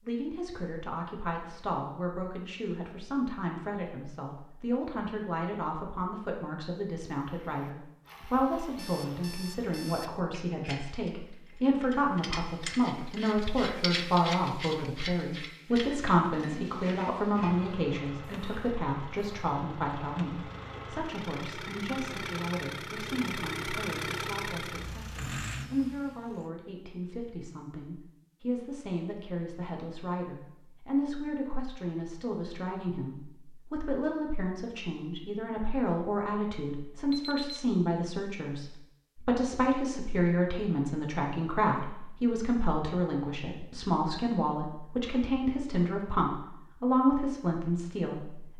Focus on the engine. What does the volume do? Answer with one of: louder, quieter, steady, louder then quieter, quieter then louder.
louder.